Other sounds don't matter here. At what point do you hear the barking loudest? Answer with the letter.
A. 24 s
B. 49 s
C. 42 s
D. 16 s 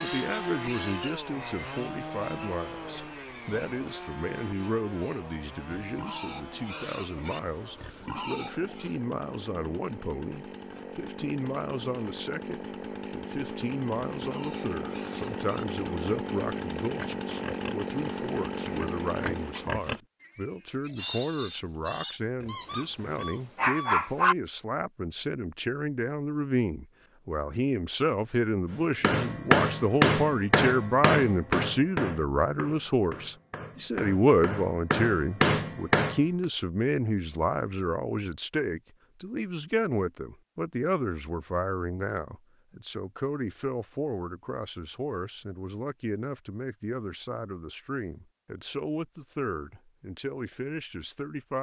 A.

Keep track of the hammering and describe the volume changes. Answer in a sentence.
The loudness of the hammering goes down, then up.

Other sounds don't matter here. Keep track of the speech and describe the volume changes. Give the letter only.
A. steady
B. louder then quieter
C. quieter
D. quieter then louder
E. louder
B.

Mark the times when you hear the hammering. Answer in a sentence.
You can hear the hammering from 29.0 to 36.5 s.